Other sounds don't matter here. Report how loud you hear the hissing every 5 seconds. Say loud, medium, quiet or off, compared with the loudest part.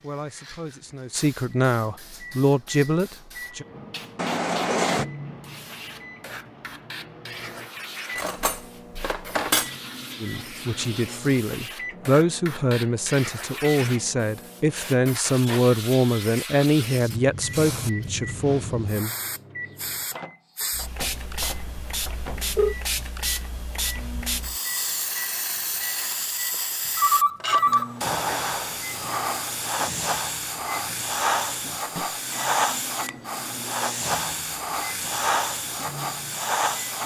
quiet, quiet, medium, medium, medium, loud, loud, loud.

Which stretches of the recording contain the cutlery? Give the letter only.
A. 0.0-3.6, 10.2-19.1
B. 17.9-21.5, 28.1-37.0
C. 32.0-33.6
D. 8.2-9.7
D.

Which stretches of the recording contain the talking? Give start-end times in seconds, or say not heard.
0.0-3.6, 10.2-19.1.